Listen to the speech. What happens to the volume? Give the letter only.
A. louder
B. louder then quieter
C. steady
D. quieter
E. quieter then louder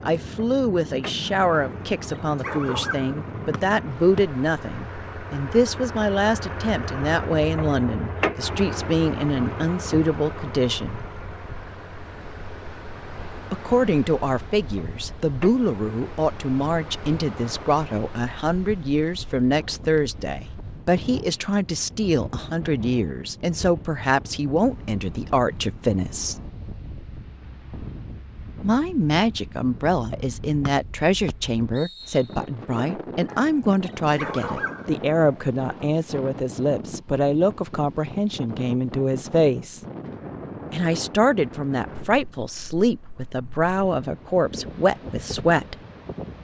C.